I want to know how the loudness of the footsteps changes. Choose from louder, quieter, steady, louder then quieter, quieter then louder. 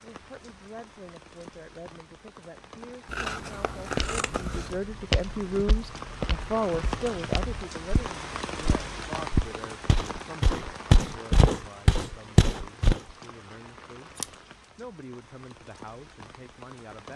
quieter then louder.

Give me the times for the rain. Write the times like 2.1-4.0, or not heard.
0.0-17.1.